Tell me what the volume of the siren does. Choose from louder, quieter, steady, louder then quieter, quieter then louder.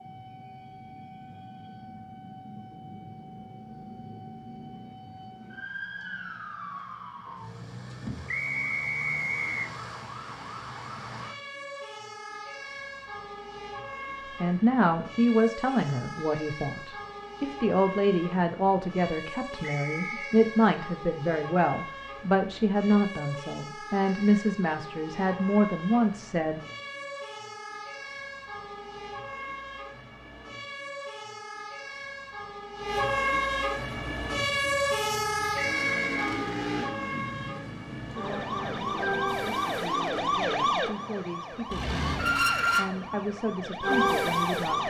louder.